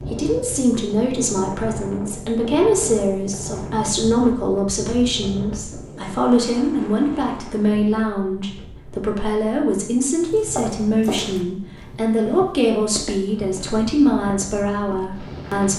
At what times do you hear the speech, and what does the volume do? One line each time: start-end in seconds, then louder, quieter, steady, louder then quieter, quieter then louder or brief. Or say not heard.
0.0-15.7 steady.